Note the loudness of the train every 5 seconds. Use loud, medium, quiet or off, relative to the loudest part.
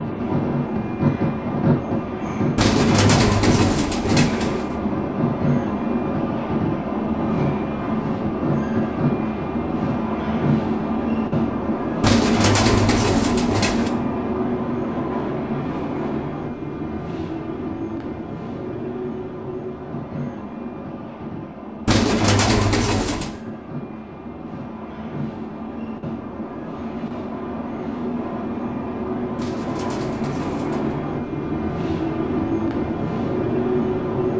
loud, loud, loud, medium, medium, medium, loud.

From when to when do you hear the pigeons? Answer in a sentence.
The pigeons can be heard from 2.5 to 4.8 s, from 12.0 to 13.9 s, from 21.9 to 23.4 s and from 29.4 to 31.0 s.